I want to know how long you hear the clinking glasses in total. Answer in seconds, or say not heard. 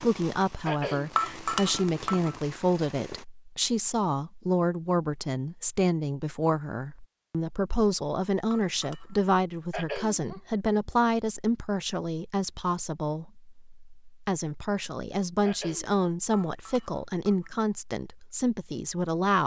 3 s.